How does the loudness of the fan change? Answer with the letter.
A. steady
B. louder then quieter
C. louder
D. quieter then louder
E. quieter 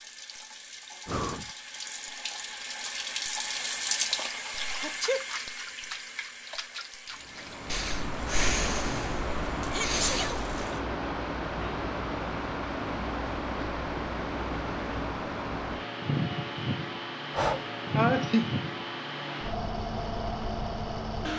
A.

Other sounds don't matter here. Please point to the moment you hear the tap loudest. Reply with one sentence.
The loudest moment of the tap is at 4 seconds.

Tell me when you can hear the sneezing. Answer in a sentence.
You can hear the sneezing from 4.8 to 5.2 s, from 9.7 to 10.4 s and from 17.9 to 18.6 s.